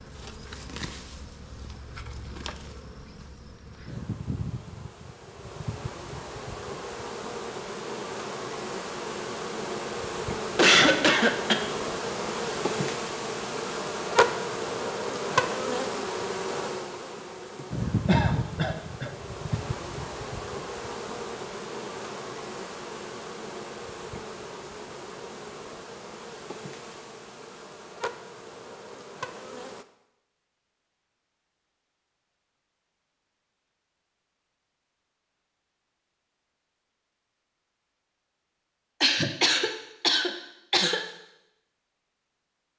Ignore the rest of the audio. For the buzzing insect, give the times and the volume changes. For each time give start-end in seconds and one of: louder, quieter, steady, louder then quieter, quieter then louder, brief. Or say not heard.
0.0-29.9 louder then quieter.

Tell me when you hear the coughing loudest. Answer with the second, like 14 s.
11 s.